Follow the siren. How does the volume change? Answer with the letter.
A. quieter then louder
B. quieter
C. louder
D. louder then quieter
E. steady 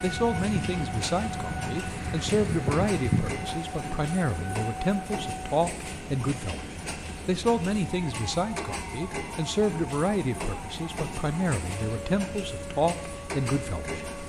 B.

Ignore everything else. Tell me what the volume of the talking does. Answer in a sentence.
The loudness of the talking stays about the same.